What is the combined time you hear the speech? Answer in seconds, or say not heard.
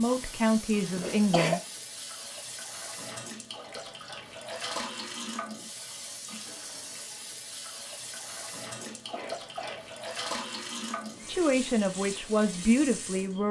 4 s.